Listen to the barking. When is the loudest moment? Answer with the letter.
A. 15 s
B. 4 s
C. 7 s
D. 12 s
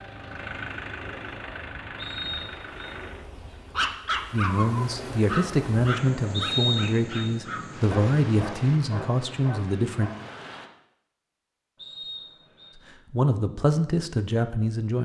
B.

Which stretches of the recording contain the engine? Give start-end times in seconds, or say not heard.
0.0-3.3.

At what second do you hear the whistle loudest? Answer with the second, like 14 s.
7 s.